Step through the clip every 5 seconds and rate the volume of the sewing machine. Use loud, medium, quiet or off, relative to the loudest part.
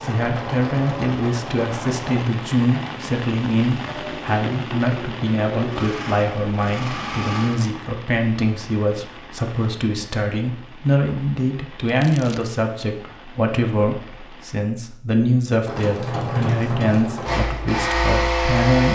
medium, medium, off, loud.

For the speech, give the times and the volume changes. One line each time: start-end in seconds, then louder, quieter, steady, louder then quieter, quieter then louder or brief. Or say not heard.
0.0-18.9 steady.